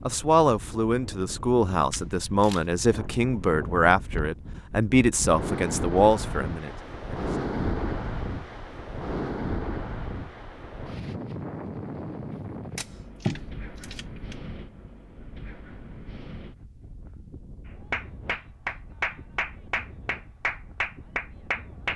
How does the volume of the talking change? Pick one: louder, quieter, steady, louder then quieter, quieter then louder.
steady.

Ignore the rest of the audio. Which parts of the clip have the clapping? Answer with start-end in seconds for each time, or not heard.
17.9-21.9.